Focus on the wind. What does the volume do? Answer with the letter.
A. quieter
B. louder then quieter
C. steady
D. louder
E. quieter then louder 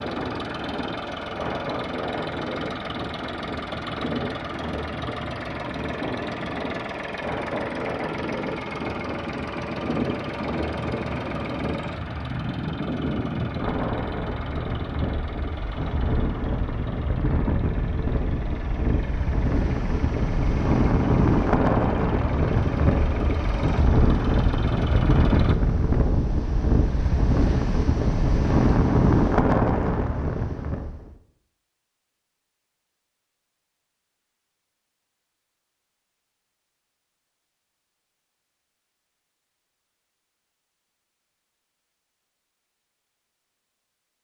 D.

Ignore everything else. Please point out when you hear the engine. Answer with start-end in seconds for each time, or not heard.
0.0-25.6.